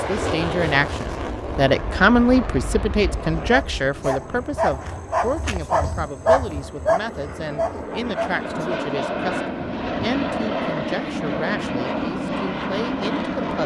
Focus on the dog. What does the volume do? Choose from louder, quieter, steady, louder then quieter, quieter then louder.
louder then quieter.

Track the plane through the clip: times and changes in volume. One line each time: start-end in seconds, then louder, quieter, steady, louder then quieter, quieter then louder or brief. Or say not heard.
0.0-13.6 quieter then louder.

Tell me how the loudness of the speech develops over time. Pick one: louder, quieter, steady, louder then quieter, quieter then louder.
quieter.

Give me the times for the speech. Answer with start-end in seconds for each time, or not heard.
0.0-13.6.